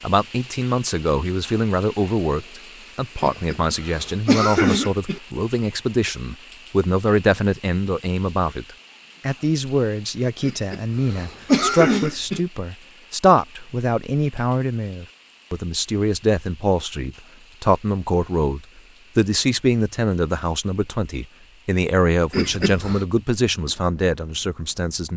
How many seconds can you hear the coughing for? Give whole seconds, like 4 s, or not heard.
5 s.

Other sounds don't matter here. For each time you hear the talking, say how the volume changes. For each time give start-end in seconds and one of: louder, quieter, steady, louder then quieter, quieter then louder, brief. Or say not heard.
0.0-25.1 steady.